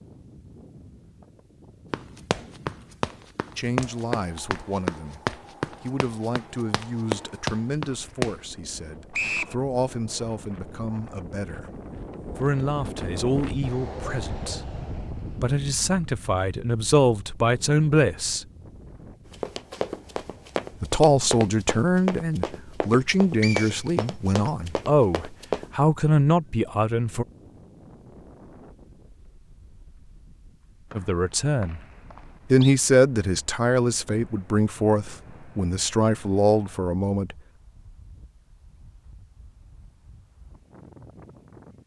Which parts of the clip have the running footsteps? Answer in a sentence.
The running footsteps can be heard from 1.9 to 8.3 s and from 19.2 to 25.7 s.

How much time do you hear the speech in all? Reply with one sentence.
The speech can be heard for 26 seconds in total.